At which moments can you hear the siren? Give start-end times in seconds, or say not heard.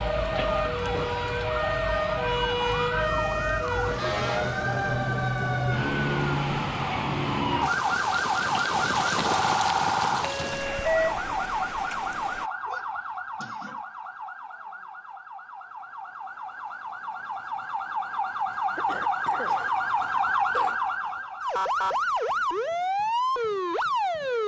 0.0-24.4.